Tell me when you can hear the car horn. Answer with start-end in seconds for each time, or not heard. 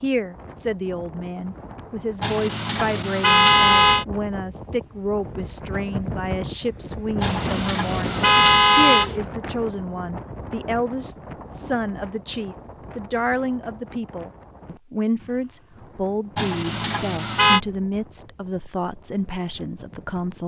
2.2-4.0, 7.2-9.2, 16.4-17.6.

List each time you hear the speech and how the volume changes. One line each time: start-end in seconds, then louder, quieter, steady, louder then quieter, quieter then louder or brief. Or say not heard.
0.0-20.4 steady.